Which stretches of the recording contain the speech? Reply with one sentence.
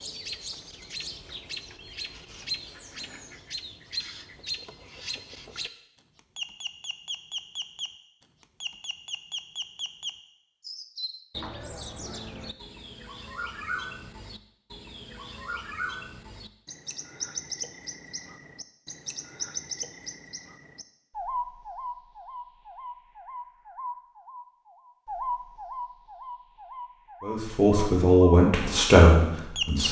The speech can be heard from 27.2 to 29.8 s.